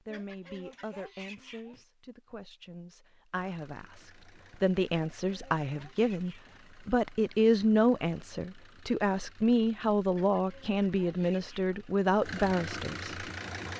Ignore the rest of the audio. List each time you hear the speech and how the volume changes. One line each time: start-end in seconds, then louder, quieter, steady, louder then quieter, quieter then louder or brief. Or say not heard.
0.0-13.2 louder.